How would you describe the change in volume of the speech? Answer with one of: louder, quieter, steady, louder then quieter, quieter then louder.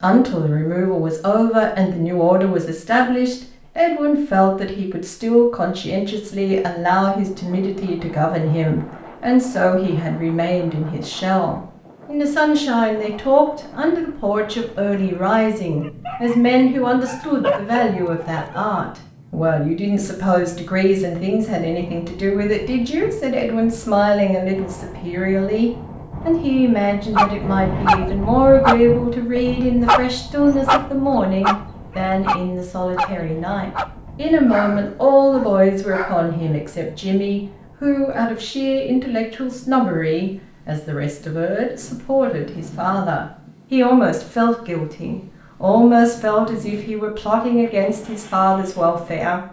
steady.